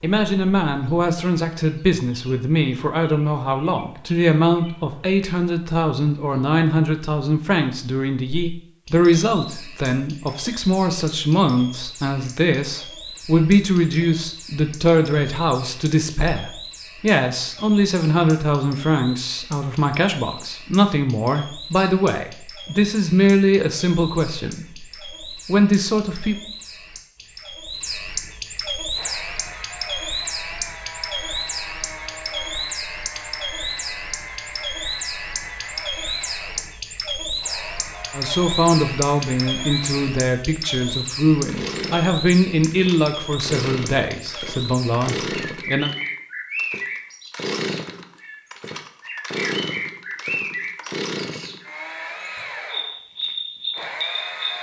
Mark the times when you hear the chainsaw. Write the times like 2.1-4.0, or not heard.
28.9-54.5.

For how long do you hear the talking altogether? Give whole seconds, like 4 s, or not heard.
34 s.